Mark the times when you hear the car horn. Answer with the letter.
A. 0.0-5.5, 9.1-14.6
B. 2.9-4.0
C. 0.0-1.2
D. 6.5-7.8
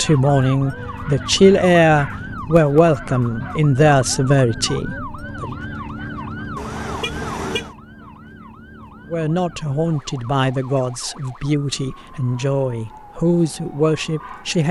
D.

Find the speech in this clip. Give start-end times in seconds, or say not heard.
0.0-5.5, 9.1-14.6.